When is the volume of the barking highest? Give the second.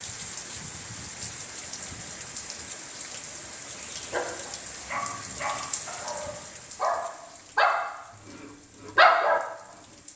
9 s.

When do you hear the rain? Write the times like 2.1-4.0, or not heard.
0.0-10.1.